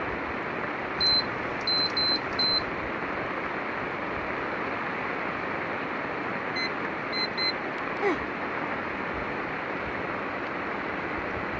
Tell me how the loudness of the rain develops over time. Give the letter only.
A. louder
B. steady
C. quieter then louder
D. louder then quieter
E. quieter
B.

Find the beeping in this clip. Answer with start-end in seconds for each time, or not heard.
0.9-2.7, 6.5-8.2.